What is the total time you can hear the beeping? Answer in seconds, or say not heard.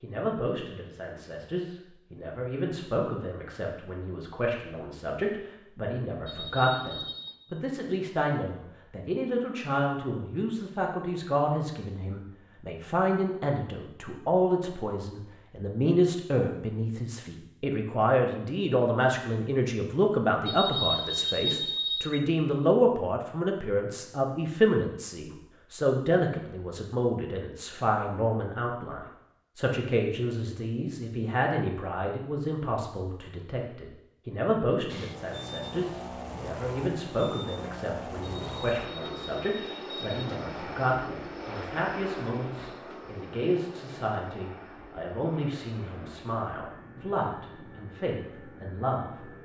5 s.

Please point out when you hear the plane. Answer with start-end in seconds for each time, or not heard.
34.9-49.4.